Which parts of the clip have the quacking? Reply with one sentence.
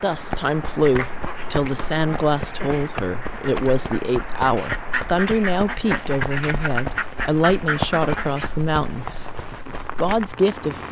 The quacking can be heard from 0.8 to 8.5 s.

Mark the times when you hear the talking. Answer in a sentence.
The talking can be heard from 0.0 to 10.8 s.